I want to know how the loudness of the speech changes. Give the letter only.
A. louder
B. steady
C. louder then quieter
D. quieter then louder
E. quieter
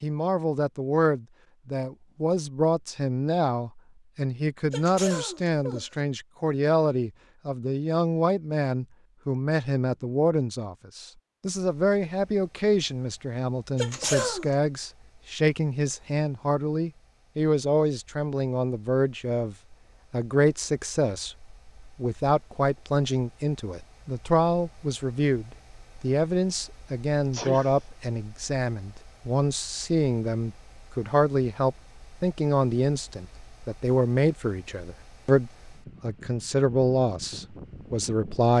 B.